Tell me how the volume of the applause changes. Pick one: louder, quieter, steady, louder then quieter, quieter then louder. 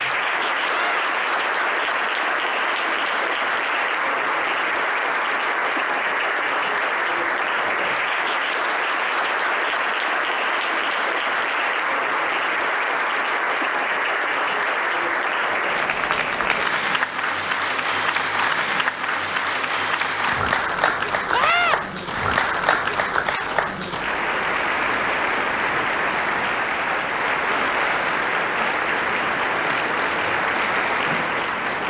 steady.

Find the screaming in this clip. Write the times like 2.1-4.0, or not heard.
0.6-1.1, 21.3-21.8.